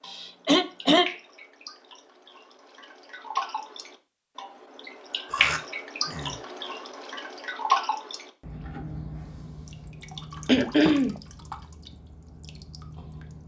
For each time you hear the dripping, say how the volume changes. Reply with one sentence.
You can hear the dripping from 0.0 to 13.4 s, getting louder then quieter.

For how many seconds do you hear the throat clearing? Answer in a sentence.
The throat clearing can be heard for 3 seconds in total.